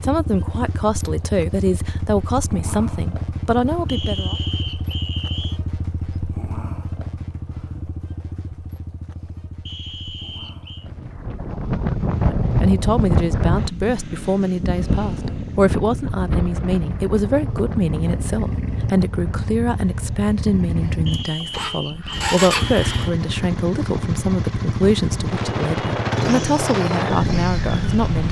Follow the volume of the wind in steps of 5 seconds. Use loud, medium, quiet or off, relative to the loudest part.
off, off, loud, medium, medium, loud.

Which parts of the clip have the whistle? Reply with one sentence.
You can hear the whistle from 3.9 to 5.6 s, from 9.7 to 10.9 s and from 21.1 to 23.1 s.